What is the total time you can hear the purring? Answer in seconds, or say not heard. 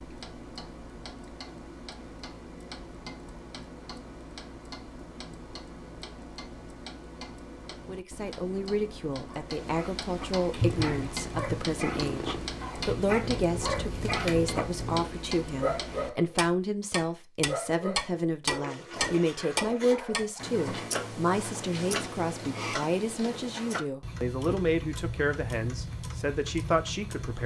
5 s.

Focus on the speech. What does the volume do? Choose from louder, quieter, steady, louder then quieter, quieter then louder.
steady.